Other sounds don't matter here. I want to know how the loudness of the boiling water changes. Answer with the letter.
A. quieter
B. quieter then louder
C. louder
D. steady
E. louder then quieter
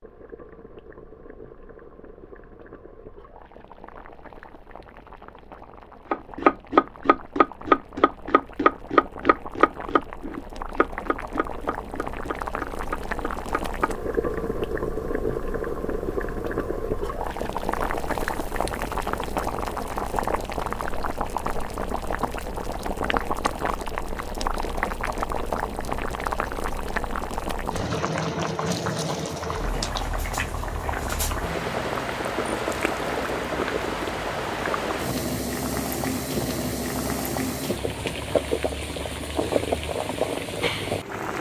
C.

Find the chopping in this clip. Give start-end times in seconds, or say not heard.
6.1-13.9.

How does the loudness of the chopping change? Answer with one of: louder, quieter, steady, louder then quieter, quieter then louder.
quieter.